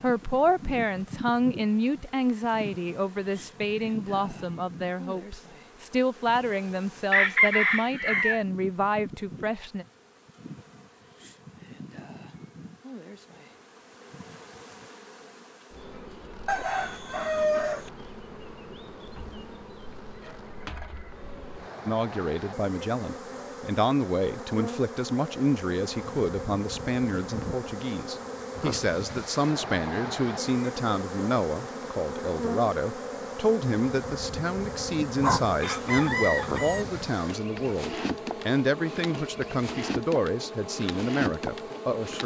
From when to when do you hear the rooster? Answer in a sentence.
The rooster can be heard from 7.1 to 8.4 s, from 16.4 to 17.9 s and from 35.2 to 36.9 s.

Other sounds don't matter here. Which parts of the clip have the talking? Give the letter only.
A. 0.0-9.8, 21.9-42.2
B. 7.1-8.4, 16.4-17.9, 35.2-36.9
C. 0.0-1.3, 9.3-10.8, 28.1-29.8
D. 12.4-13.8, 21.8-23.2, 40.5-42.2
A.